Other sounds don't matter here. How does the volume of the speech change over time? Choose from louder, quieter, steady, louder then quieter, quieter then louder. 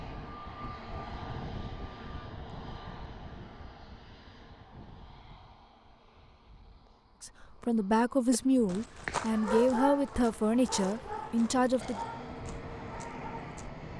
steady.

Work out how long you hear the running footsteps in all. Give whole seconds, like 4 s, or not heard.
not heard.